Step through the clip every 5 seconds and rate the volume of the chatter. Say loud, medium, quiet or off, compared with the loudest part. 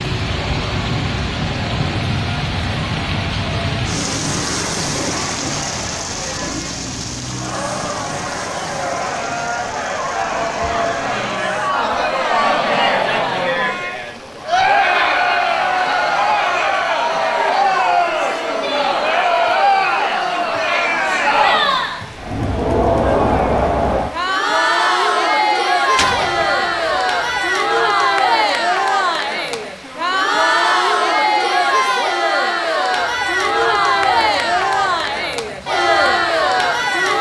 quiet, medium, loud, loud, loud, loud, loud, loud.